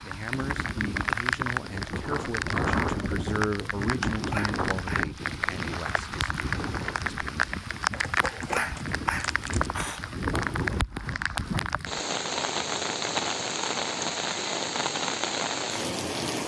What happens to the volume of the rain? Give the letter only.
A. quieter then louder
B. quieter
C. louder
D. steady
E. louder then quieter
D.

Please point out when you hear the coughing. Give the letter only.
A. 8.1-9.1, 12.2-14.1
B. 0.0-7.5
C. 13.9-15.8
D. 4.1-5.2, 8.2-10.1
D.